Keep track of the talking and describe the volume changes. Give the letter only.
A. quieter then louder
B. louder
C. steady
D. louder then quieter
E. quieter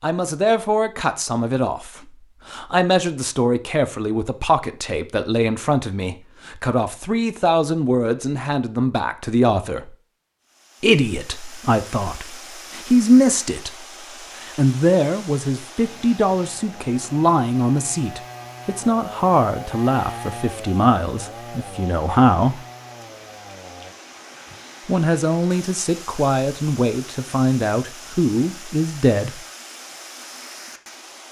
C.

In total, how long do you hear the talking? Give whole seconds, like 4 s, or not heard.
26 s.